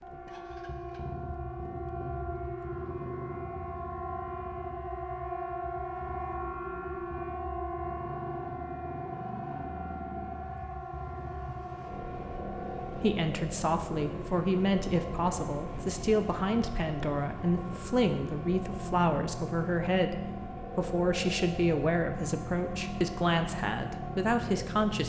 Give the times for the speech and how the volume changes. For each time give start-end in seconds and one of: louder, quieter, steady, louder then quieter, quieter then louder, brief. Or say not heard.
12.9-25.0 steady.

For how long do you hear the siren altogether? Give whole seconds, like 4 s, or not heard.
25 s.